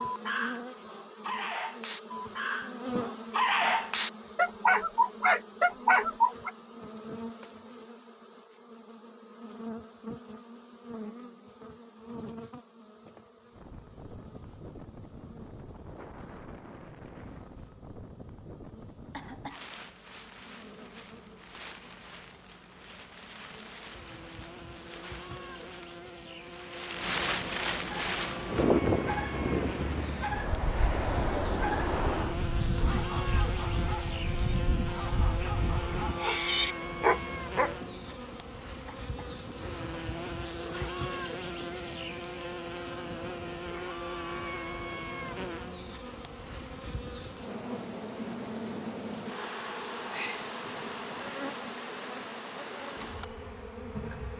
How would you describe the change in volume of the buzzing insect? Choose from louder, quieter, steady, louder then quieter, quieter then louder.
quieter then louder.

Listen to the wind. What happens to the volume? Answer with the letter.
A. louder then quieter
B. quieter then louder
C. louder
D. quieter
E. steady
A.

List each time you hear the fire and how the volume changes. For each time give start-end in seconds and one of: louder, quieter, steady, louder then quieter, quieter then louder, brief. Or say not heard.
not heard.